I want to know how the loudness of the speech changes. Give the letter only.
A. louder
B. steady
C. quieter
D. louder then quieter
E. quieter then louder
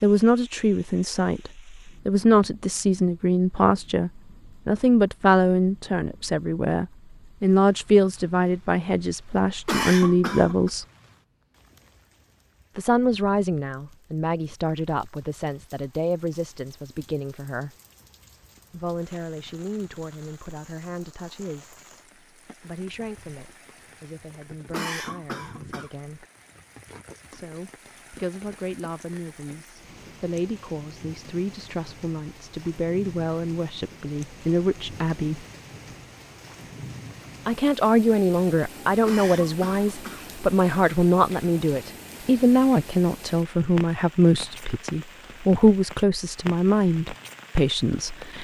E.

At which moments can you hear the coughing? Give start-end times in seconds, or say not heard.
9.7-10.7, 24.7-25.9, 39.0-40.4.